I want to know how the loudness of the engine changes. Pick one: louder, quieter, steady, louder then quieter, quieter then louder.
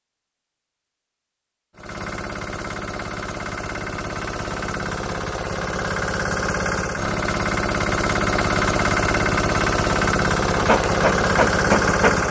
louder.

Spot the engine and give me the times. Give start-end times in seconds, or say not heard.
1.8-12.2.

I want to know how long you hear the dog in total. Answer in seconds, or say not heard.
2 s.